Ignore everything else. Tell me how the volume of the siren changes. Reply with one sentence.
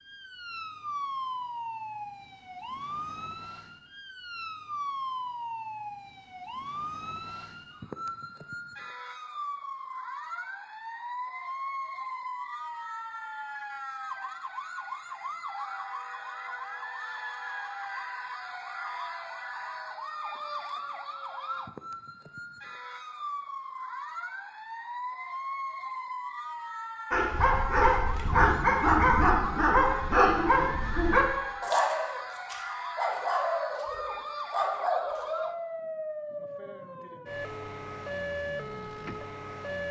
The volume of the siren stays about the same.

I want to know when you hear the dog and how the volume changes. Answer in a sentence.
The dog can be heard from 27.1 to 35.4 s, getting quieter.